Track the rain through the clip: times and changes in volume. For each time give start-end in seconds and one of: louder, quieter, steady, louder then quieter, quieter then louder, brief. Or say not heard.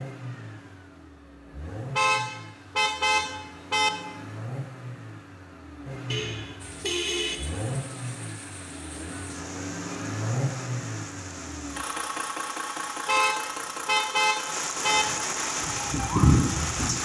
6.5-17.0 louder.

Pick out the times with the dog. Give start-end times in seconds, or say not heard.
not heard.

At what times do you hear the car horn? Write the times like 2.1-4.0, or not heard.
1.9-3.9, 6.1-7.4, 13.1-15.1.